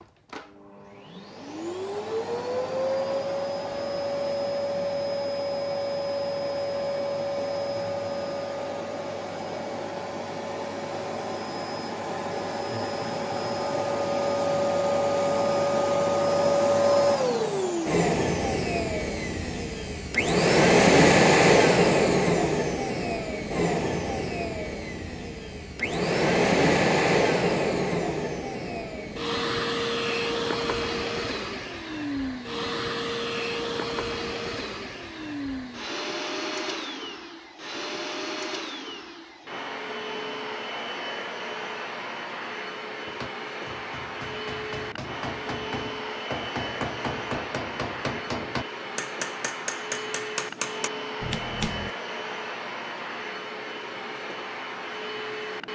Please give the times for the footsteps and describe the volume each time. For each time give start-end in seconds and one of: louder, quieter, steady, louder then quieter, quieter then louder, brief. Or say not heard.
not heard.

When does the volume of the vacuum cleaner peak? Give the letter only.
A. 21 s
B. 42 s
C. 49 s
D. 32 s
A.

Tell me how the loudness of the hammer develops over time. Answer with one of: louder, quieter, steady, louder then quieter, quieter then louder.
louder.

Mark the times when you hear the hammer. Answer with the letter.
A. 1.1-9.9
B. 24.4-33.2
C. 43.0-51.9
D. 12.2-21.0
C.